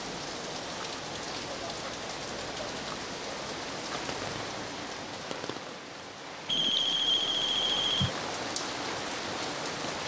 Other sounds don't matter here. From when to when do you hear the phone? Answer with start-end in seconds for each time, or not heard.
6.5-8.1.